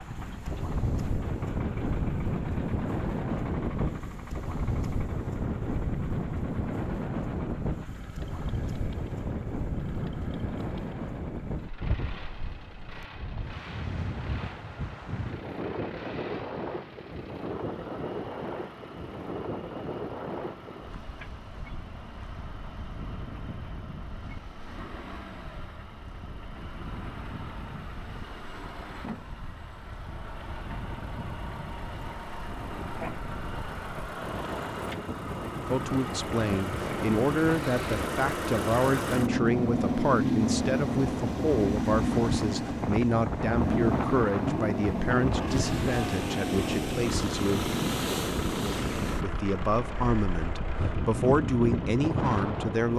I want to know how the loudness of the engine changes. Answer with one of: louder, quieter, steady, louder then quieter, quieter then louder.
louder.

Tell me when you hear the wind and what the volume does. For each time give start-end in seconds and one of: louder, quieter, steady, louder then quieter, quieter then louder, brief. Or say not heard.
0.0-52.9 quieter then louder.